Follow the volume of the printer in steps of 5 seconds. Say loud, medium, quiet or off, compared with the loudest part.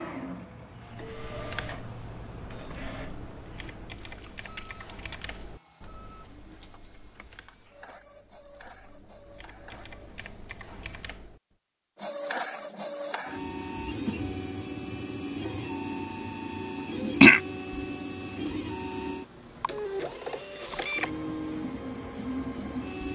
medium, quiet, loud, loud, loud.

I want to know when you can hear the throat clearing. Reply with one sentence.
You can hear the throat clearing from 16.8 to 17.4 s.